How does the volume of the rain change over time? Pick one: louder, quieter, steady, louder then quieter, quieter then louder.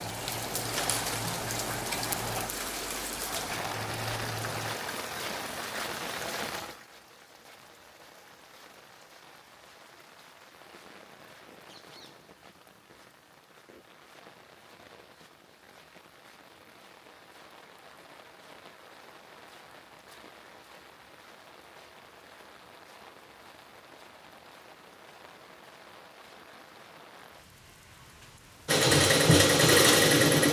quieter.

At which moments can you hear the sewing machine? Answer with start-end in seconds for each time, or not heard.
0.0-4.8, 28.6-30.4.